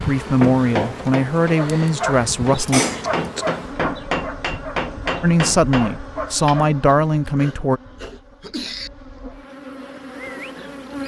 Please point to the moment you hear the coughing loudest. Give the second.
3 s.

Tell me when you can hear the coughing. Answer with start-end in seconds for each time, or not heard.
2.6-3.2, 6.8-8.9.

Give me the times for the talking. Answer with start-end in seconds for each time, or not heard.
0.0-2.9, 5.2-7.8.